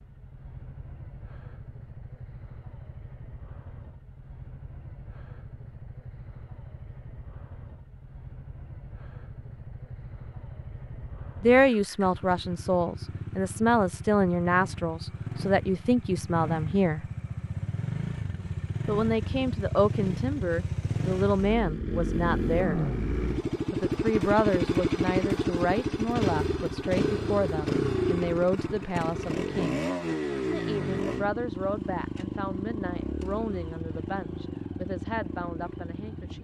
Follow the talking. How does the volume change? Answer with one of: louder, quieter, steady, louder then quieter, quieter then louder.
quieter.